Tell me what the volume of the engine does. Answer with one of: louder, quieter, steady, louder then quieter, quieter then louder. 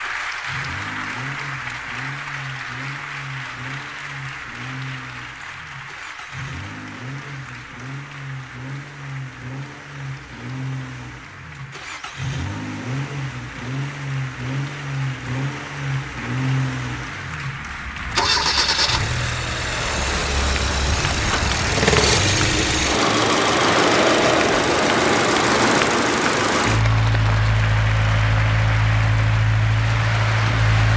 louder.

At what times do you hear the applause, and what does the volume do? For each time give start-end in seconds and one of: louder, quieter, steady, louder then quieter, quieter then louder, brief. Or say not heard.
0.0-30.9 quieter then louder.